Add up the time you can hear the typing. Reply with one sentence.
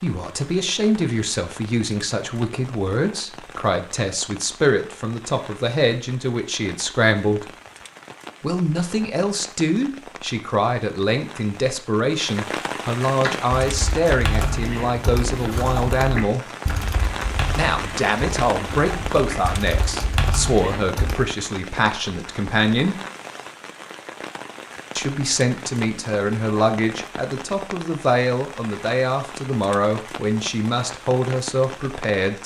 The typing can be heard for 8 seconds in total.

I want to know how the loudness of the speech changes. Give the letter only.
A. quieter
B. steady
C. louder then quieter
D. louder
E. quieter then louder
B.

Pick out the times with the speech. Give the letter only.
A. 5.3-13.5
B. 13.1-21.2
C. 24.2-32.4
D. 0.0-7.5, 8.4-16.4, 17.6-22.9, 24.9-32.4
D.